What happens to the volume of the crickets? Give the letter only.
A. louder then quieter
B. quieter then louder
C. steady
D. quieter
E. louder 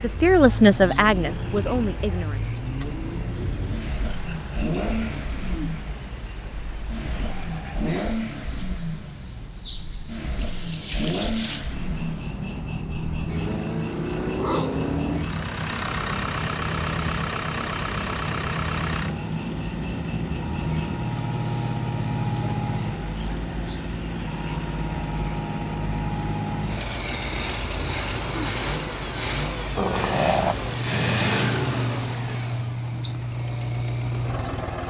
C.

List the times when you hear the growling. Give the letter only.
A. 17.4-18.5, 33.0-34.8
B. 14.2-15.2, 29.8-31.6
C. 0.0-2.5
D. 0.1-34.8
B.